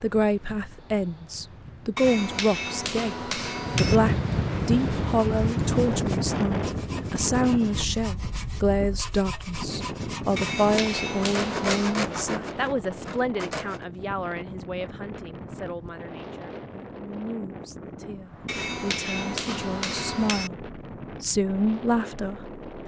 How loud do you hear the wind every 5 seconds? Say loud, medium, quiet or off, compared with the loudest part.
loud, loud, medium, medium, medium.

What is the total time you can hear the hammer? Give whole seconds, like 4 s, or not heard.
6 s.